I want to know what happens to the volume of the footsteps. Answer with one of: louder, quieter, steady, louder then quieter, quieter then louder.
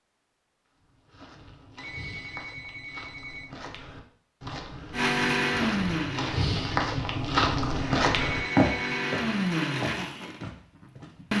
louder then quieter.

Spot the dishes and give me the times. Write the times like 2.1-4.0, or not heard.
not heard.